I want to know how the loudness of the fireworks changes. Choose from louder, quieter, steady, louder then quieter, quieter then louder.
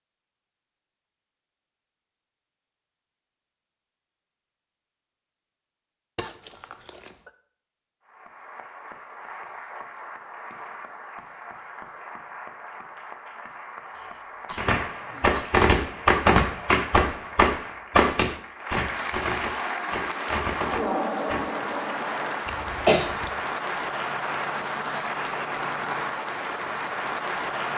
quieter.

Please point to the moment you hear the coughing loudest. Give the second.
23 s.